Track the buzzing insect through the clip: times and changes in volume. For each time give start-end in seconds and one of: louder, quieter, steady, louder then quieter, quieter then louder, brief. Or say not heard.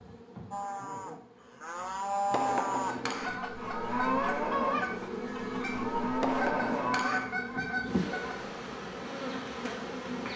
0.0-10.3 louder.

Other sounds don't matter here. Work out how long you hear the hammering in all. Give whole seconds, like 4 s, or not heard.
2 s.